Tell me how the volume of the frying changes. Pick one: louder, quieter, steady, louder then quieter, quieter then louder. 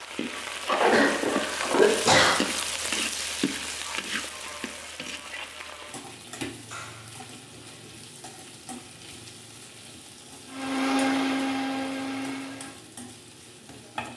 quieter.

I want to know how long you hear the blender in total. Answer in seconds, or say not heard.
2 s.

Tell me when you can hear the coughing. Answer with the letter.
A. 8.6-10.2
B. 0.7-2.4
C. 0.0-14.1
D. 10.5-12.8
B.